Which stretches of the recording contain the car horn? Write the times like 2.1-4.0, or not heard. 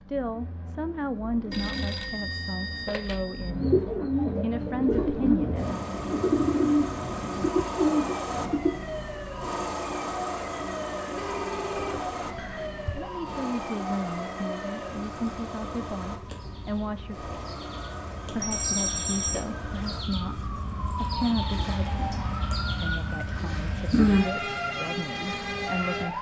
not heard.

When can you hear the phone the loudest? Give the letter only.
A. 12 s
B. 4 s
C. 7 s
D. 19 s
D.